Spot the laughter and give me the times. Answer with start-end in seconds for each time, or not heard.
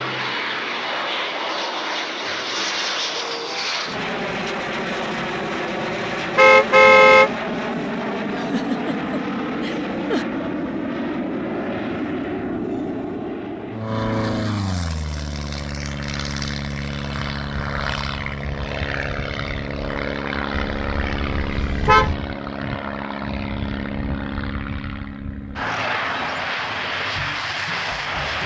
8.2-10.2.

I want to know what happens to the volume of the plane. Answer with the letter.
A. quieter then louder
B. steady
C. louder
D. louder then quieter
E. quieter
B.